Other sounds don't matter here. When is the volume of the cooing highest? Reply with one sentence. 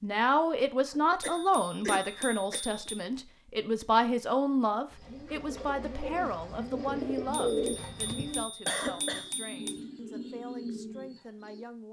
The loudest moment of the cooing is at 8 seconds.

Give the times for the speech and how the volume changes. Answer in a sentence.
The speech can be heard from 0.0 to 11.8 s, getting quieter.